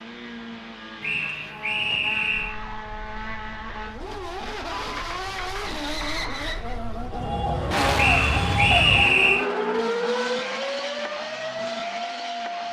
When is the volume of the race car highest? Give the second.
8 s.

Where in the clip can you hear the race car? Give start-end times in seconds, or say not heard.
0.0-12.6.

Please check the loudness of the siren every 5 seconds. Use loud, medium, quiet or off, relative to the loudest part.
quiet, loud, loud.